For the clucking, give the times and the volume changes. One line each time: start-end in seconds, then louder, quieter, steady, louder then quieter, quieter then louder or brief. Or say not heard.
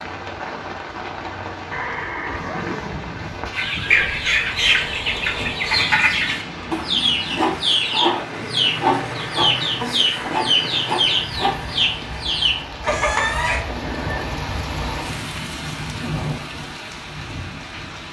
3.5-13.7 steady.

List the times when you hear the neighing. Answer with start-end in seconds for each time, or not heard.
1.7-3.5, 13.7-14.4.